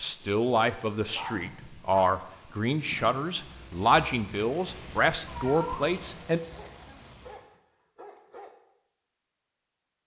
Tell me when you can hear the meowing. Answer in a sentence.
The meowing can be heard from 5.2 to 6.3 s.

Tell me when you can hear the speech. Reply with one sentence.
You can hear the speech from 0.0 to 6.4 s.